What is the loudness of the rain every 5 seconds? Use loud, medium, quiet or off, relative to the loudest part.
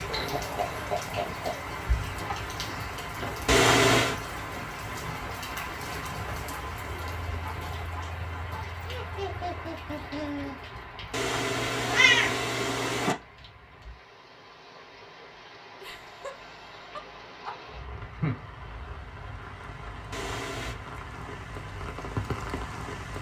loud, loud, medium, medium, loud.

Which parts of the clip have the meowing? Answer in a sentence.
You can hear the meowing from 3.5 to 4.2 s, from 11.1 to 13.2 s and from 20.1 to 20.8 s.